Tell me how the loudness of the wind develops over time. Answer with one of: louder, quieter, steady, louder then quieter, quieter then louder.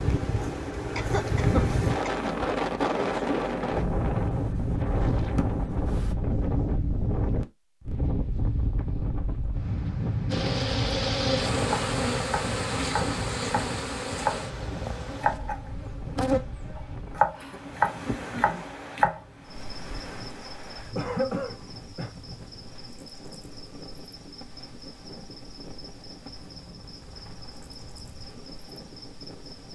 quieter.